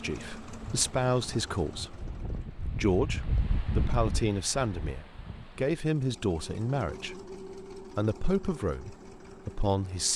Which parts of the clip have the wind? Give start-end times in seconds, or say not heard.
0.1-5.8.